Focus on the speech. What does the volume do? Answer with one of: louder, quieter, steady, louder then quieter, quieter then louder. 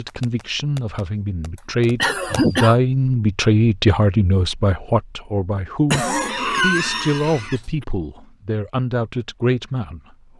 louder then quieter.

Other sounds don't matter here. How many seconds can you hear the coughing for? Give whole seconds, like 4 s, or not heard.
3 s.